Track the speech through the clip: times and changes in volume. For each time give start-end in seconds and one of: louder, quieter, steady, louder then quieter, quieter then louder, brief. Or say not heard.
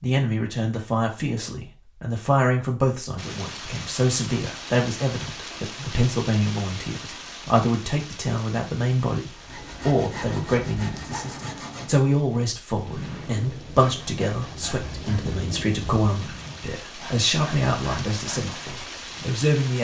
0.0-19.7 steady.